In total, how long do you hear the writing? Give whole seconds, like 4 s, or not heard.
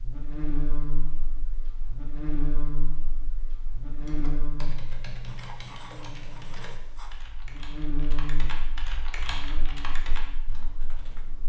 2 s.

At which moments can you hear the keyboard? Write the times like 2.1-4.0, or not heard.
4.0-11.4.